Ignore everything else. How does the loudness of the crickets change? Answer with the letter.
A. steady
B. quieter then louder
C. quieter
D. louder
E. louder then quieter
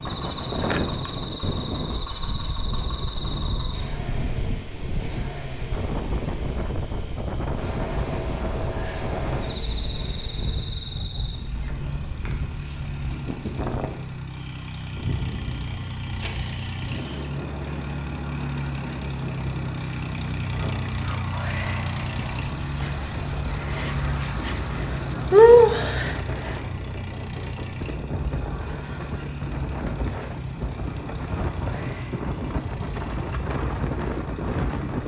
E.